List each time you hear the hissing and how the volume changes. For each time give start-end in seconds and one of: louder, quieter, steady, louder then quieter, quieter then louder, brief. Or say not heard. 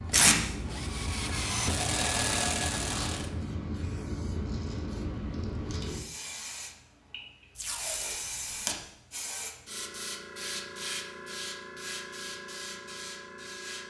0.0-13.8 steady.